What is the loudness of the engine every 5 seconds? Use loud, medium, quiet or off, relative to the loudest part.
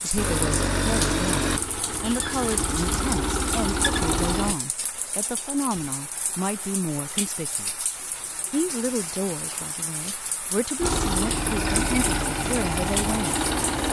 loud, off, loud.